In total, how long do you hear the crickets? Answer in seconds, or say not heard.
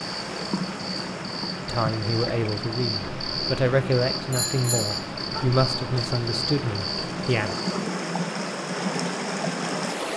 8 s.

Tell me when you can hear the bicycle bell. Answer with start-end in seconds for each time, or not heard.
4.3-5.4.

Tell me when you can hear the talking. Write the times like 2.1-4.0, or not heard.
1.6-7.5.